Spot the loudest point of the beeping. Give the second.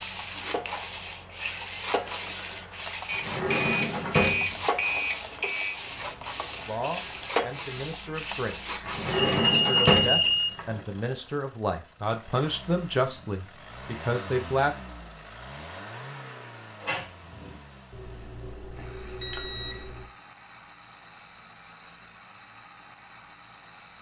10 s.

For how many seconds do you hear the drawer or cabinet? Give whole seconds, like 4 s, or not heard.
4 s.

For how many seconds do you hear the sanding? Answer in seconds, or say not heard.
9 s.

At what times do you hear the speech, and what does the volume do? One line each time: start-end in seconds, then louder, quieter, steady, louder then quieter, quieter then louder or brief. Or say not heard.
6.7-14.8 louder.